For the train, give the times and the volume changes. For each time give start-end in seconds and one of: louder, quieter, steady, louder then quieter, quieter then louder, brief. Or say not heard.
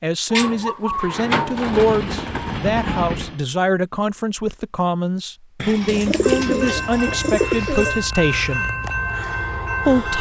1.5-3.5 brief
6.0-10.1 steady.